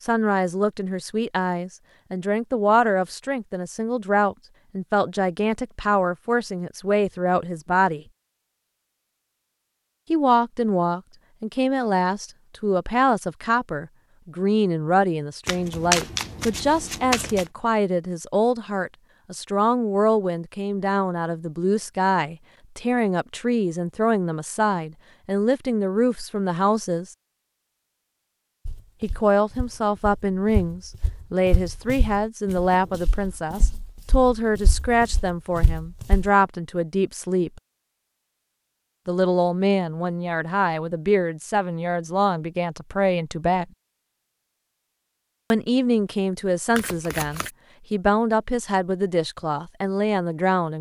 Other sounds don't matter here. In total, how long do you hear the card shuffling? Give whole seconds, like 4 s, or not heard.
3 s.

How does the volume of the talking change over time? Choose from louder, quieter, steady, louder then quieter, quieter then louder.
steady.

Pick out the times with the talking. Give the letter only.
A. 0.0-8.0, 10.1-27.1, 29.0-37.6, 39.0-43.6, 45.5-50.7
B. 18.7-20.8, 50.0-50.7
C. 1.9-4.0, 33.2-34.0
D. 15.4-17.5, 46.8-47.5
A.